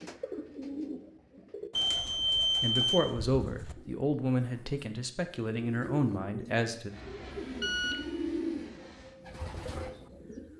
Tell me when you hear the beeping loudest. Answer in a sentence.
The volume of the beeping peaks at 2 seconds.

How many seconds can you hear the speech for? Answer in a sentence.
The speech can be heard for 4 seconds in total.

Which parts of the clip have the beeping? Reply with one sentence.
You can hear the beeping from 1.8 to 3.8 s and from 7.5 to 8.1 s.